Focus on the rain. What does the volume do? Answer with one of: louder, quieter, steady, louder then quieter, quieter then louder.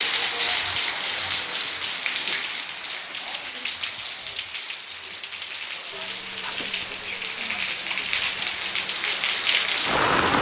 quieter then louder.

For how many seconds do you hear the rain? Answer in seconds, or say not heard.
10 s.